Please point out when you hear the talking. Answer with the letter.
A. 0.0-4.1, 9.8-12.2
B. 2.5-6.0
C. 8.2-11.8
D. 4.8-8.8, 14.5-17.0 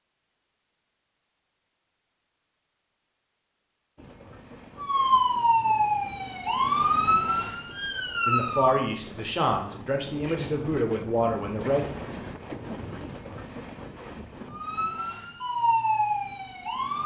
C.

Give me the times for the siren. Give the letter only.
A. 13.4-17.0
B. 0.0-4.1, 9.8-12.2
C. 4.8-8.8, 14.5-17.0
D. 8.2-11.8
C.